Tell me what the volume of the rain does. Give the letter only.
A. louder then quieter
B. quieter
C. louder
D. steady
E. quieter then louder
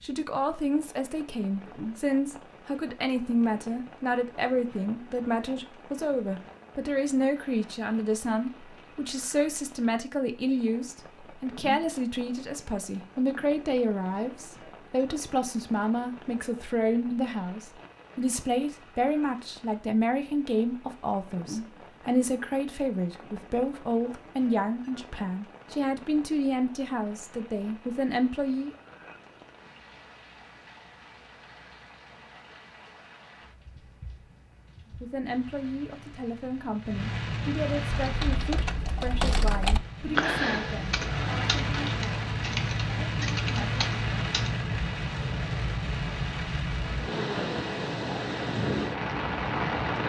C.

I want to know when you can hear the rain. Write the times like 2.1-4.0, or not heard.
0.0-50.0.